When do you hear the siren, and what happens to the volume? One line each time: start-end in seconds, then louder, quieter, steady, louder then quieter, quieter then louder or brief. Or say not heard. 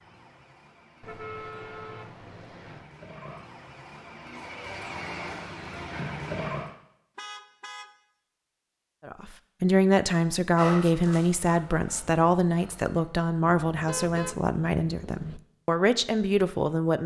0.0-6.8 louder.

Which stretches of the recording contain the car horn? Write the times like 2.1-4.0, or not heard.
1.0-2.9, 7.2-7.9, 13.6-15.4.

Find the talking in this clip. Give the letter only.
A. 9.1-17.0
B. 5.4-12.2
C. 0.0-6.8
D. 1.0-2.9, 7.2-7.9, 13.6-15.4
A.